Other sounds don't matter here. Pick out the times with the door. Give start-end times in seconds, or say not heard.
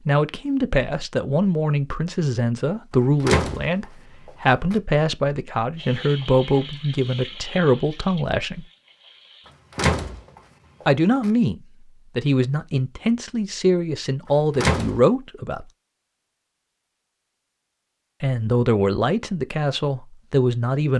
3.2-4.8, 9.8-10.2, 10.8-11.3, 14.6-15.0.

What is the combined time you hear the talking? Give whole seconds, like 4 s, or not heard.
16 s.